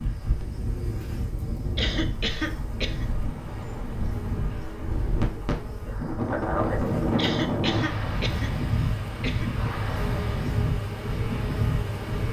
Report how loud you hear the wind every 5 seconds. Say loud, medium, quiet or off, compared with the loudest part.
medium, loud, loud.